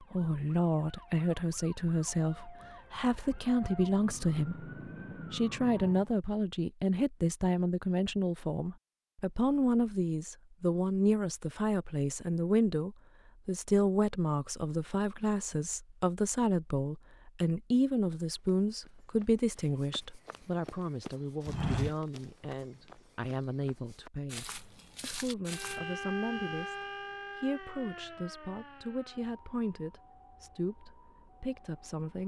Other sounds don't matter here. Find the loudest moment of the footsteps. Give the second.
22 s.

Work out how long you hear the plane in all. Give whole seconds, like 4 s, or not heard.
not heard.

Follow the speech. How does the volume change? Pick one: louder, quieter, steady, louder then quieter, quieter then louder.
quieter.